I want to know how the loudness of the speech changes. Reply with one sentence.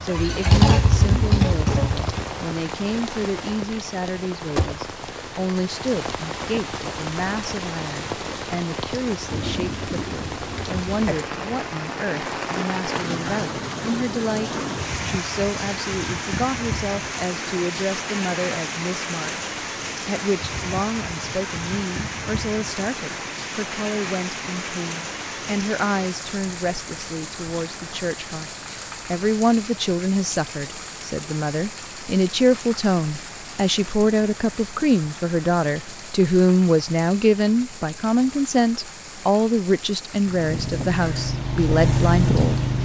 The volume of the speech goes up.